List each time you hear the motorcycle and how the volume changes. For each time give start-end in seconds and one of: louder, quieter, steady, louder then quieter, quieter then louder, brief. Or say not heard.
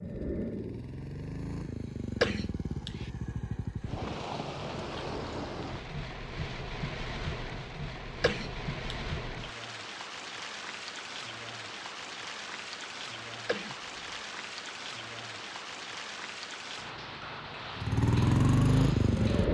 0.0-4.2 steady
17.8-19.4 brief.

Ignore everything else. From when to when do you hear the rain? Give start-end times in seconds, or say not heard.
3.8-19.4.